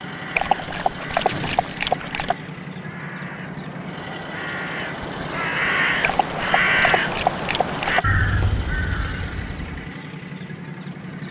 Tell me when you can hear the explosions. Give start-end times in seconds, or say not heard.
1.2-1.7.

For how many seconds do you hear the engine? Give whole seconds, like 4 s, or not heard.
11 s.